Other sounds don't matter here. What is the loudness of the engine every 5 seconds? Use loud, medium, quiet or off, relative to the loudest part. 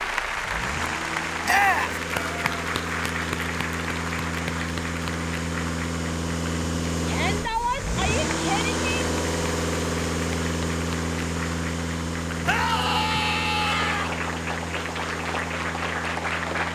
medium, loud, loud, medium.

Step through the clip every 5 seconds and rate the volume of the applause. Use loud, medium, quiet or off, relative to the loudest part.
loud, medium, medium, loud.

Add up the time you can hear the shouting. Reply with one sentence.
The shouting can be heard for 4 seconds in total.